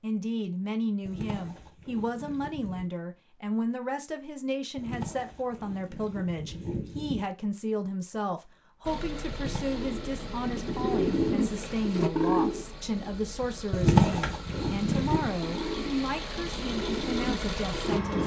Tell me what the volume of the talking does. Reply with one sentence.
The loudness of the talking stays about the same.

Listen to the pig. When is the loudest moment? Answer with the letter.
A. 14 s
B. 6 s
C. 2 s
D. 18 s
A.